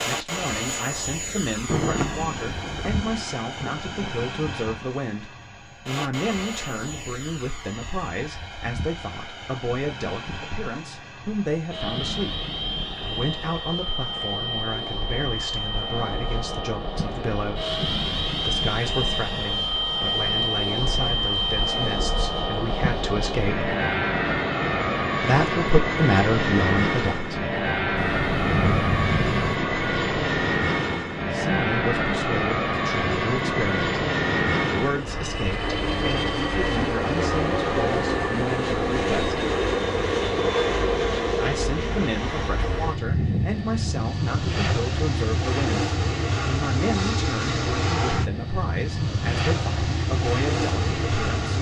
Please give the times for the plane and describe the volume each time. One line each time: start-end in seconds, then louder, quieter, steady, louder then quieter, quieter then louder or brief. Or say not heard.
0.0-51.5 louder.